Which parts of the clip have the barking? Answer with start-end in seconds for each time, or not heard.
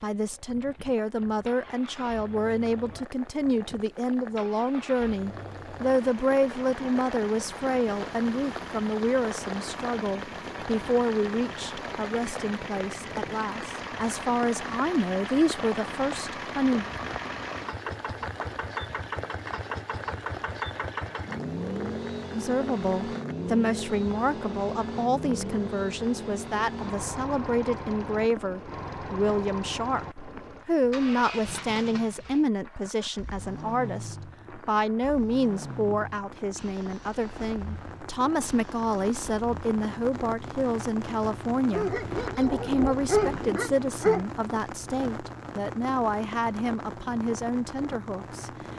41.7-44.2.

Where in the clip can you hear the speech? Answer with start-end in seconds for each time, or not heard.
0.0-16.9, 22.3-48.5.